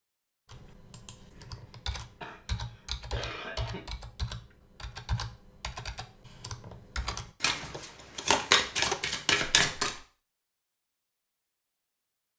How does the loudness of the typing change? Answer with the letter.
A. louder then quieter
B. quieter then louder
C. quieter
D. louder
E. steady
D.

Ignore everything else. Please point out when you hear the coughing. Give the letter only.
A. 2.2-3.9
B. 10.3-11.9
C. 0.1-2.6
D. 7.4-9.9
A.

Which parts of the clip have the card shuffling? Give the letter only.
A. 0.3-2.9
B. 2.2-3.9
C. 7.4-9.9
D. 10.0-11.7
C.